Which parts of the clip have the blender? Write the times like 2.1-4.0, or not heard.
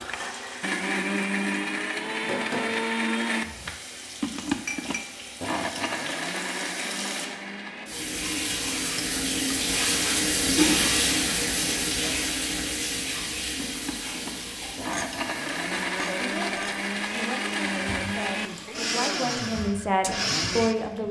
0.0-7.9, 13.6-20.9.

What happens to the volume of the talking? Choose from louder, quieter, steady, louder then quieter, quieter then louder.
louder.